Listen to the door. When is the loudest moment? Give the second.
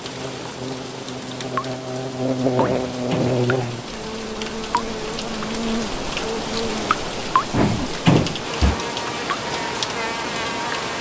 8 s.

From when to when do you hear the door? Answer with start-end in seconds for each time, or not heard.
2.5-3.4, 7.5-8.8.